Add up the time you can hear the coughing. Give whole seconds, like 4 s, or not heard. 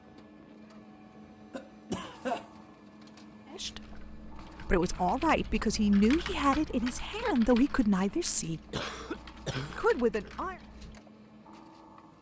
2 s.